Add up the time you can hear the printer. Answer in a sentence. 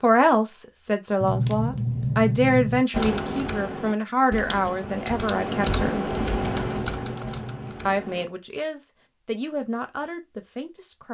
You can't hear the printer here.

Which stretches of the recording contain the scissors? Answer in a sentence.
You can hear the scissors from 1.2 to 2.9 s and from 6.5 to 7.8 s.